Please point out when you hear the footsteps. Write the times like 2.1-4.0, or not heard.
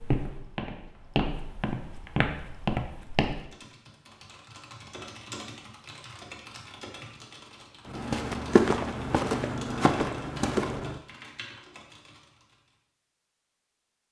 0.0-3.5, 7.8-11.0.